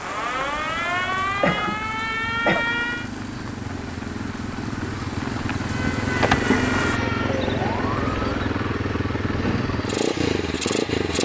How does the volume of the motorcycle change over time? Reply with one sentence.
The volume of the motorcycle goes up.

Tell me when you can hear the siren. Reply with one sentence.
The siren can be heard from 0.0 to 3.1 s and from 5.5 to 8.6 s.